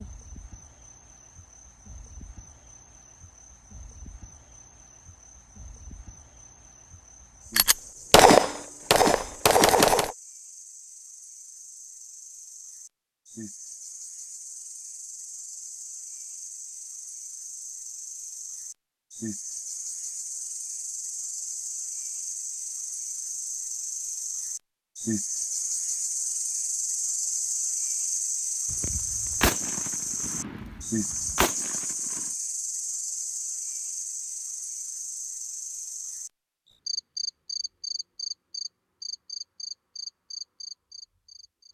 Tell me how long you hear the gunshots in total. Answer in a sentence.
The gunshots can be heard for 6 seconds in total.